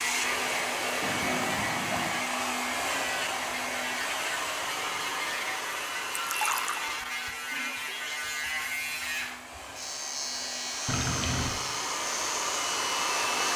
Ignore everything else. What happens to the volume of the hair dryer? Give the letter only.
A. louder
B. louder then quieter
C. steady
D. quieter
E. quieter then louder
E.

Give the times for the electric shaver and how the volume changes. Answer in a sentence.
The electric shaver can be heard from 0.0 to 13.5 s, at a steady volume.